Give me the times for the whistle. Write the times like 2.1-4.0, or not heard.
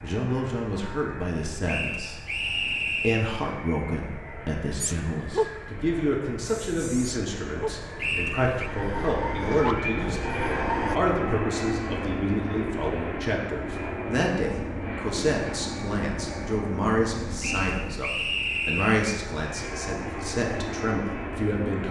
1.6-3.3, 8.0-8.7, 17.4-19.0.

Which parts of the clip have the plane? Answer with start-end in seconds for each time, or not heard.
0.0-21.8.